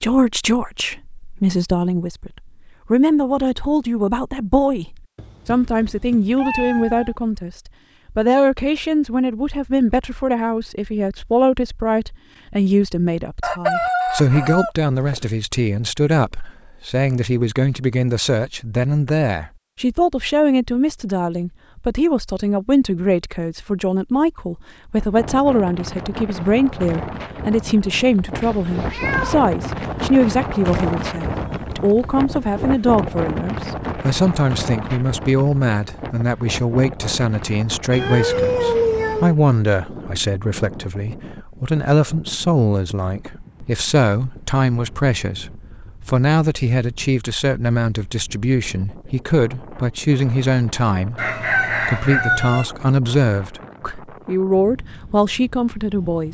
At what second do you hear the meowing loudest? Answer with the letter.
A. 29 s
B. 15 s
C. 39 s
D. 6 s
C.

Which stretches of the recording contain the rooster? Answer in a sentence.
The rooster can be heard from 13.4 to 15.2 s and from 51.1 to 52.6 s.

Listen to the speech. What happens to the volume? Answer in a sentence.
The volume of the speech stays about the same.